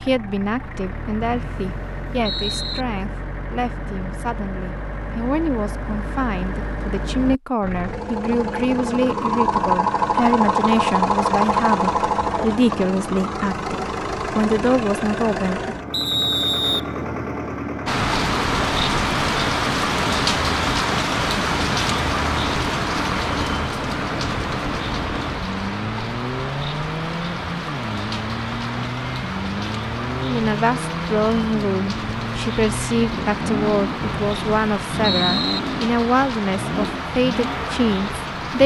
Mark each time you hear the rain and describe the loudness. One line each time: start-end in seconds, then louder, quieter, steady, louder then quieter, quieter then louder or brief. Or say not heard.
17.9-38.6 quieter.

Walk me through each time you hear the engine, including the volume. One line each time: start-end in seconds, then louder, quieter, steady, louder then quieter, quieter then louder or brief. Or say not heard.
0.0-38.6 louder then quieter.